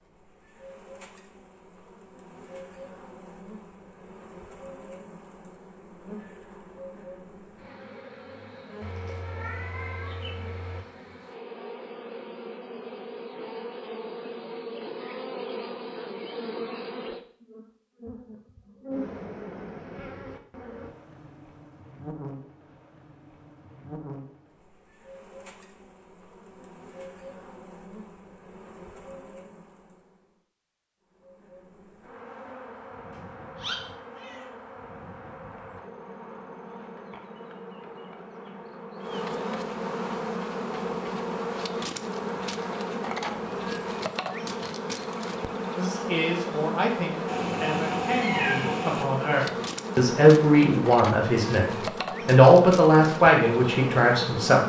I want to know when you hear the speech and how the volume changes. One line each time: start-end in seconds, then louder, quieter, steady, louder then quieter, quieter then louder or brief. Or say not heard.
45.8-54.6 louder.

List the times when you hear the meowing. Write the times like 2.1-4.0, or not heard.
8.8-10.8, 33.1-34.5, 47.2-49.0.